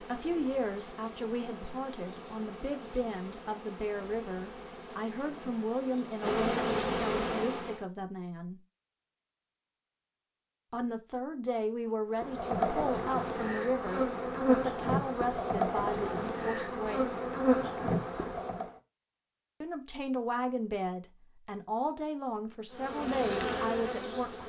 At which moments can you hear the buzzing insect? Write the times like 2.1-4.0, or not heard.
0.0-7.8, 12.2-18.8, 22.7-24.4.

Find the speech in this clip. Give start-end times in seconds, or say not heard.
0.0-8.6, 10.7-17.1, 19.6-24.4.